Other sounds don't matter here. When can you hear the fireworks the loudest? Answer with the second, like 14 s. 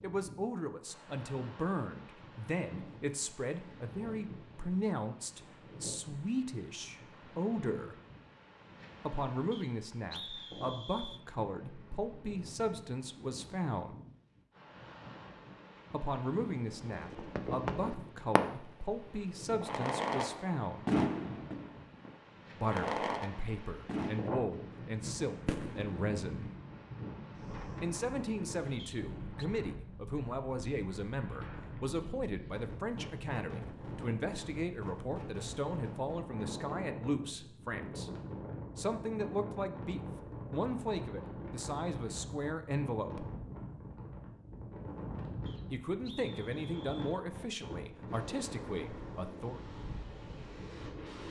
21 s.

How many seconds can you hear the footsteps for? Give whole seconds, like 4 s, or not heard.
not heard.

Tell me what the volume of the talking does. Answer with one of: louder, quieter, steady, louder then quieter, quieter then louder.
steady.